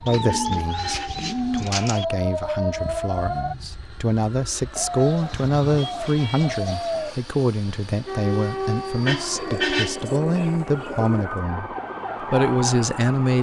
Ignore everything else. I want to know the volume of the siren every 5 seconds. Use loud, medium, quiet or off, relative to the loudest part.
loud, loud, medium.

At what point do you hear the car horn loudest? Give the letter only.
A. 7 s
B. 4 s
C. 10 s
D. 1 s
C.